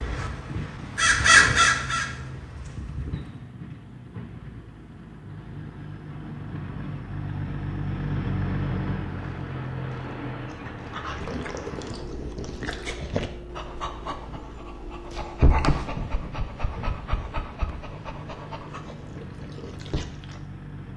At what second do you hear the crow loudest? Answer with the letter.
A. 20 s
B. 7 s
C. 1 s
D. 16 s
C.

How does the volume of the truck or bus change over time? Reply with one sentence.
The loudness of the truck or bus goes up, then down.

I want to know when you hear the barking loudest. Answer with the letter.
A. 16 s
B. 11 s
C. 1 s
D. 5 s
A.